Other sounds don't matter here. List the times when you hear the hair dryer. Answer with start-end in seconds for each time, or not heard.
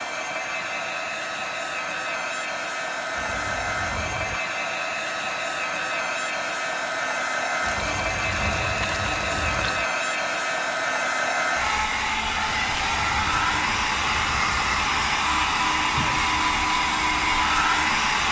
0.0-18.2.